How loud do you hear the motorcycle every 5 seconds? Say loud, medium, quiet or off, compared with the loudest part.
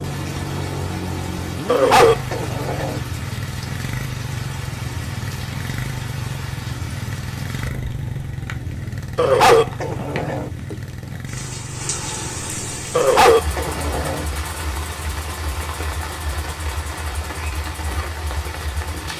loud, loud, medium, medium.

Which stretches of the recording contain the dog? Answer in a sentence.
The dog can be heard from 1.6 to 3.0 s, from 9.2 to 10.5 s and from 12.9 to 14.2 s.